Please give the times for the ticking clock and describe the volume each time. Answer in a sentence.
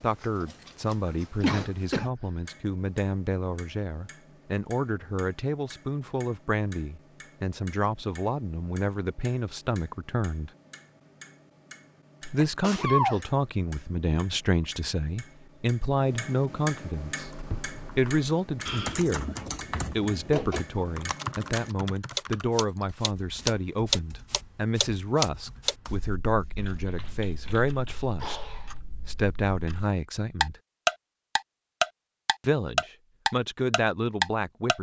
The ticking clock can be heard from 0.0 to 34.7 s, getting louder.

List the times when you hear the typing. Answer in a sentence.
The typing can be heard from 17.1 to 27.9 s.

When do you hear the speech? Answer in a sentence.
You can hear the speech from 0.0 to 10.5 s, from 12.3 to 19.4 s, from 19.9 to 30.6 s and from 32.4 to 34.7 s.